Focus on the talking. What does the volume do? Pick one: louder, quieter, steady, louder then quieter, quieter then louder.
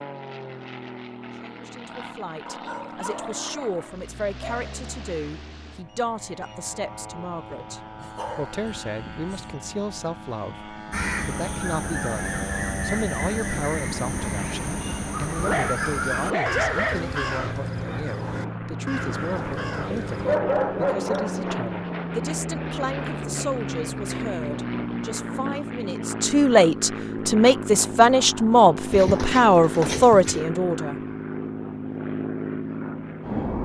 louder.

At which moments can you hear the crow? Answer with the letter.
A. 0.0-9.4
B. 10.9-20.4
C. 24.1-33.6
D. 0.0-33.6
B.